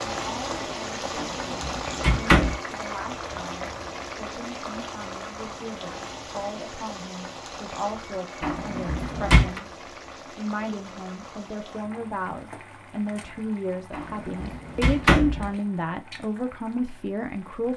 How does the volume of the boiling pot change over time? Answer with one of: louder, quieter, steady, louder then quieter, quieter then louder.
quieter.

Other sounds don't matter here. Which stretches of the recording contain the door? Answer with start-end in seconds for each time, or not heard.
1.1-2.6, 8.4-9.6, 13.9-15.5.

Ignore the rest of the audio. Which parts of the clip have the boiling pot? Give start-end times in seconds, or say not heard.
0.0-17.7.